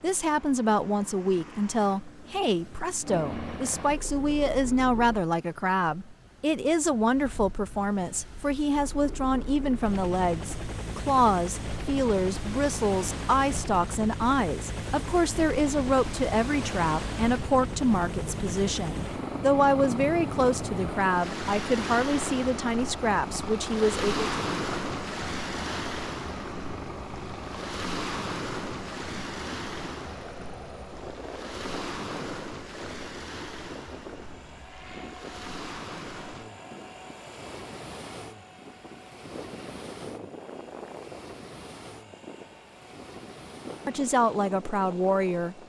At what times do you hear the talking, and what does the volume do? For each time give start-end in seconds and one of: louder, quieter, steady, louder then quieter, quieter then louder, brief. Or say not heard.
0.0-24.3 steady
43.9-45.6 brief.